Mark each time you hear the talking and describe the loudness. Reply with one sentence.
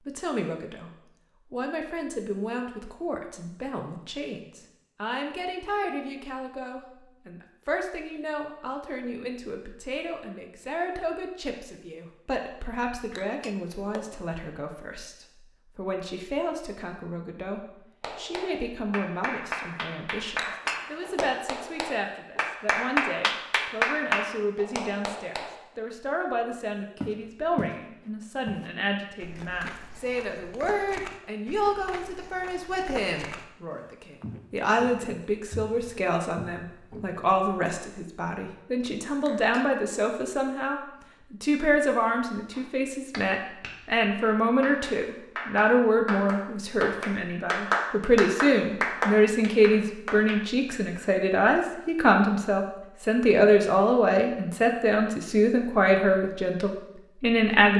You can hear the talking briefly from 0.0 to 0.9 s; and from 1.5 to 57.7 s, getting louder.